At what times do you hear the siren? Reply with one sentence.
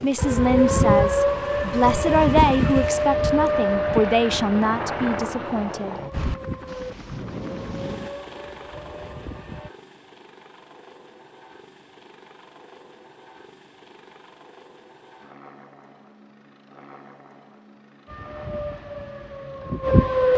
The siren can be heard from 0.0 to 9.7 s and from 18.1 to 20.3 s.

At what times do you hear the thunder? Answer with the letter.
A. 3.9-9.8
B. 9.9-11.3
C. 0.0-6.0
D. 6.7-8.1
D.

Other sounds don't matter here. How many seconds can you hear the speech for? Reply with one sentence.
You can hear the speech for 6 seconds altogether.